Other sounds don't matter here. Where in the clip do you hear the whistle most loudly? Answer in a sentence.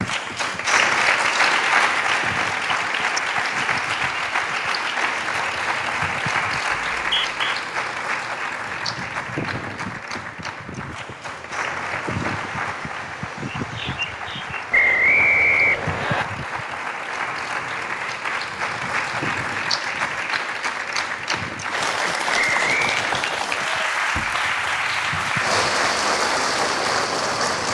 The volume of the whistle peaks at 15 seconds.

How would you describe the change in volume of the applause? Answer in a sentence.
The loudness of the applause goes down, then up.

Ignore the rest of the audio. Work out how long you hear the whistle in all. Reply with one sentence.
You can hear the whistle for 3 seconds altogether.